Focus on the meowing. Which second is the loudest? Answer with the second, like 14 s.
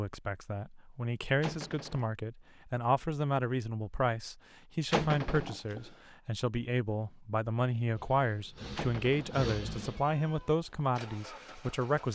5 s.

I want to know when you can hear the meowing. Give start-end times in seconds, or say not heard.
1.4-2.0, 4.9-5.8, 8.8-10.5.